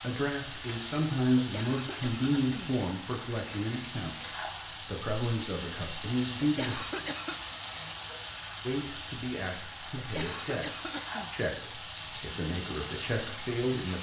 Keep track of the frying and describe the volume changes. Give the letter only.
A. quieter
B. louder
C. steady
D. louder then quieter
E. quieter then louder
C.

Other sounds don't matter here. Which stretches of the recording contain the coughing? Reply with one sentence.
You can hear the coughing from 1.4 to 2.8 s, from 6.4 to 7.4 s and from 9.9 to 11.3 s.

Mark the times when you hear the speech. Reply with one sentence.
You can hear the speech from 0.0 to 6.8 s, from 8.7 to 10.7 s and from 11.3 to 13.9 s.